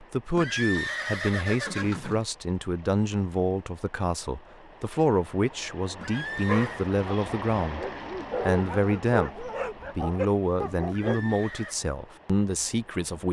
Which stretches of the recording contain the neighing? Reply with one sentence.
The neighing can be heard from 0.3 to 2.2 s, from 6.0 to 6.9 s and from 10.9 to 11.8 s.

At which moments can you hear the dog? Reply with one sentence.
You can hear the dog from 6.3 to 11.3 s.